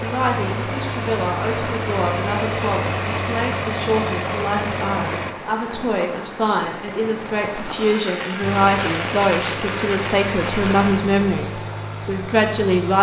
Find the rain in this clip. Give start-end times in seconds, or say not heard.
0.0-11.1.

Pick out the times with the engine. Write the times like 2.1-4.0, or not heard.
0.0-5.3, 8.4-12.9.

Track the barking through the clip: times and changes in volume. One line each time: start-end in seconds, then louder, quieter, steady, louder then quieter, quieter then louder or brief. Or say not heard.
not heard.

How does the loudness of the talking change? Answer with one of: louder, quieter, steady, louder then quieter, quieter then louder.
louder.